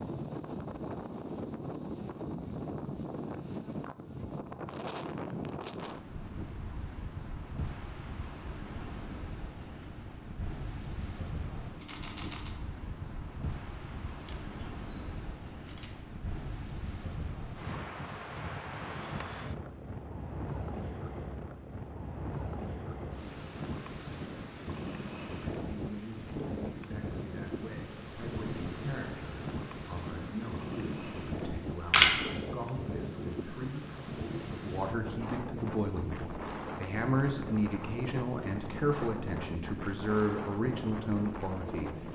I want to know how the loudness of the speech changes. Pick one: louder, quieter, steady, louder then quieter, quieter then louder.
louder.